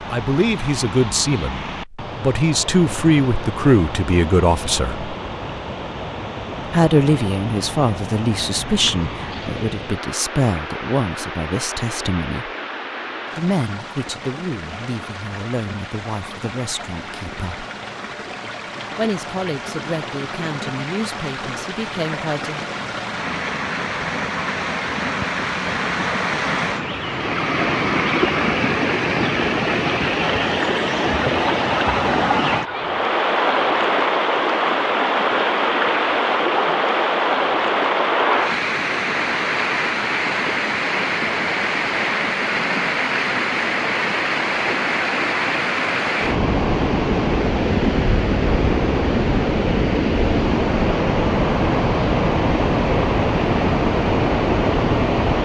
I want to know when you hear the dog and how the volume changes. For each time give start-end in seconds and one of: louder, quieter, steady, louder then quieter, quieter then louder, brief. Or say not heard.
not heard.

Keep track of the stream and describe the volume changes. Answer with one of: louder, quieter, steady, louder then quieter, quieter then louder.
louder.